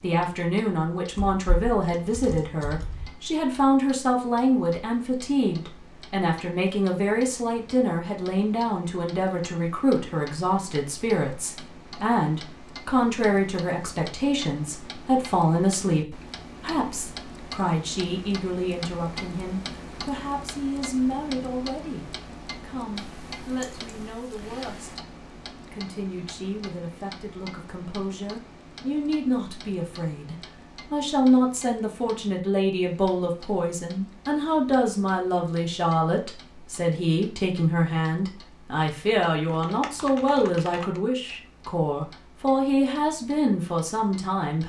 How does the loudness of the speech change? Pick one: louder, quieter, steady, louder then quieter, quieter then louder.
quieter then louder.